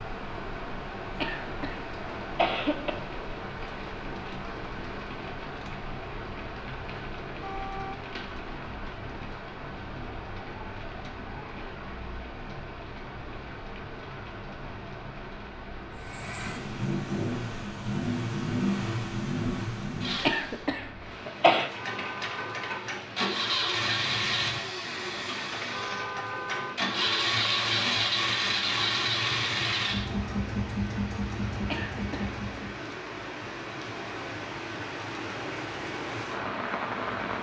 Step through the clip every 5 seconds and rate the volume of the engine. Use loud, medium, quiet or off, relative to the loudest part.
off, off, off, loud, loud, loud, medium, off.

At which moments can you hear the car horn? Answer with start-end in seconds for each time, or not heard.
7.4-8.1, 21.8-22.8, 25.7-26.8.